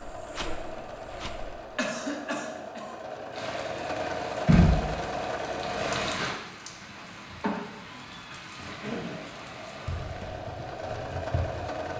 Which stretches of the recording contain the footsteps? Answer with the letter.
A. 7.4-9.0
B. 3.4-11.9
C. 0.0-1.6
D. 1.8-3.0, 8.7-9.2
C.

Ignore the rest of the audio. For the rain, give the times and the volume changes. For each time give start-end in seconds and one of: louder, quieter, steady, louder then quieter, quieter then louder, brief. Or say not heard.
3.4-11.9 quieter.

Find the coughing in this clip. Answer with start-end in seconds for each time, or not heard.
1.8-3.0, 8.7-9.2.